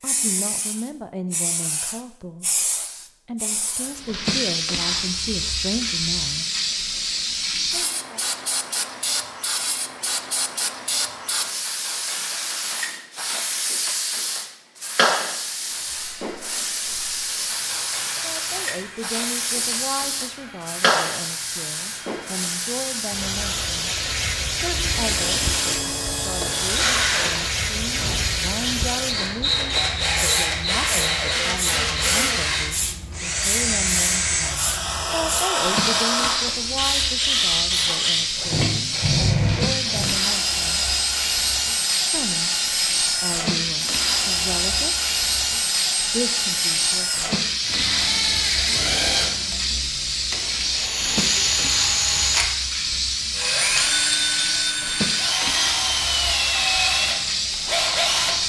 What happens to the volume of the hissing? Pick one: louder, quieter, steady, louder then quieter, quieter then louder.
steady.